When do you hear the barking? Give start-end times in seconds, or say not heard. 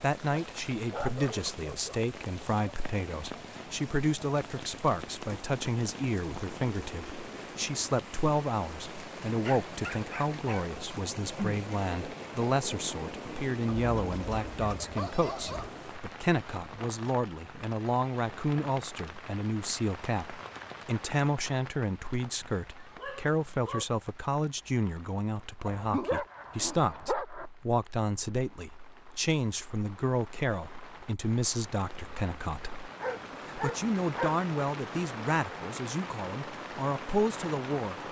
0.3-2.0, 9.4-10.7, 13.8-15.7, 22.9-23.9, 25.6-27.5, 33.0-34.4.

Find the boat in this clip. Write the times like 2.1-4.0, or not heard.
not heard.